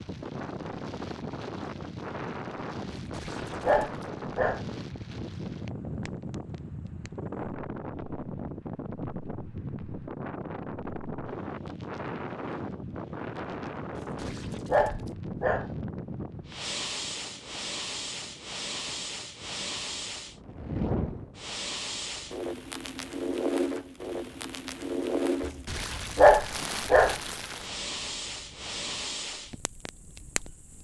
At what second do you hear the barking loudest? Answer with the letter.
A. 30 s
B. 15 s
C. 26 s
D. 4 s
C.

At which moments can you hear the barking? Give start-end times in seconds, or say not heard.
2.9-4.7, 13.9-15.7, 25.4-27.1.